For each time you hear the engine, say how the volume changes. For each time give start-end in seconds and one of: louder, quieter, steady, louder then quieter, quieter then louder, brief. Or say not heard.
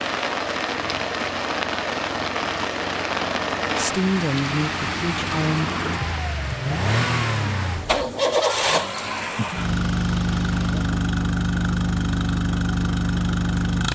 0.0-13.9 louder.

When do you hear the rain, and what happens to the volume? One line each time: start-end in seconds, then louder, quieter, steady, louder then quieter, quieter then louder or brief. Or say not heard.
0.0-10.9 quieter.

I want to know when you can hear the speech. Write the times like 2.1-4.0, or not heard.
3.8-5.7.